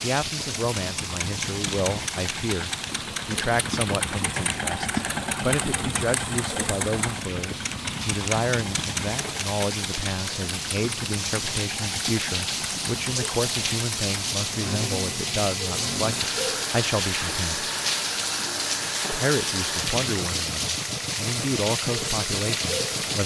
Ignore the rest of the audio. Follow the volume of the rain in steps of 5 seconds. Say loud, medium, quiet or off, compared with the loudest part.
medium, medium, loud, loud, loud.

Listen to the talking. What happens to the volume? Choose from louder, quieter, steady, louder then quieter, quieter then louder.
steady.